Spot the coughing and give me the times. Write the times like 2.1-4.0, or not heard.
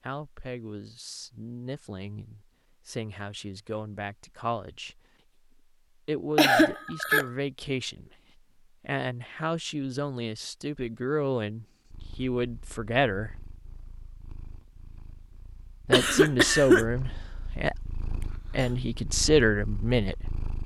6.3-7.3, 15.9-16.9.